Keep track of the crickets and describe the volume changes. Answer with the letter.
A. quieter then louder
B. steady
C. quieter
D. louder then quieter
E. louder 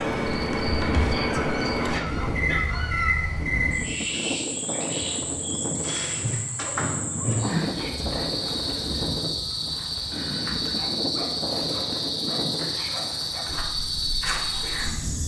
B.